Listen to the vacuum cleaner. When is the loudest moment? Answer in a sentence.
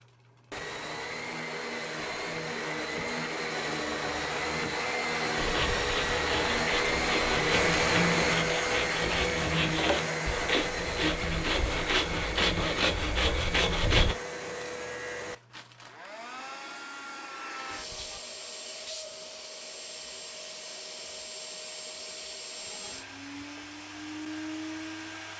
The loudest moment of the vacuum cleaner is at 8 seconds.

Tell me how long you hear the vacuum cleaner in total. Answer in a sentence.
The vacuum cleaner can be heard for 25 seconds in total.